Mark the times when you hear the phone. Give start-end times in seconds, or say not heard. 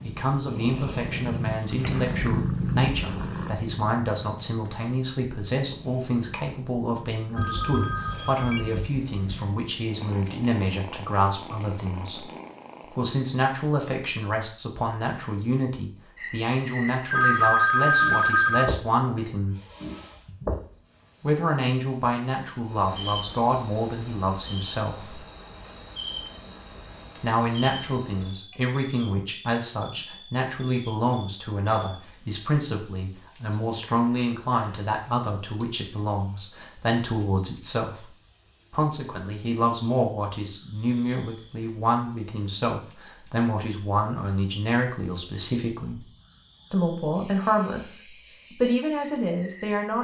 7.3-9.3, 17.1-18.7, 33.8-34.8.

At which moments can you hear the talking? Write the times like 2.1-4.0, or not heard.
0.0-12.2, 12.8-19.6, 21.2-25.2, 27.2-38.1, 38.7-46.0, 46.7-49.9.